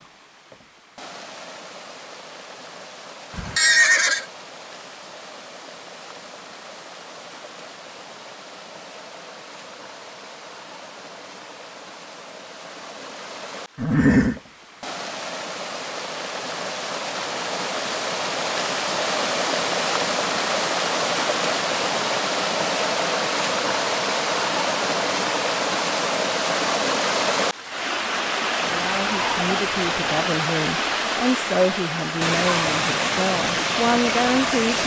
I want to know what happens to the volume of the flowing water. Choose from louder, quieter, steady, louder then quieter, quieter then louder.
louder.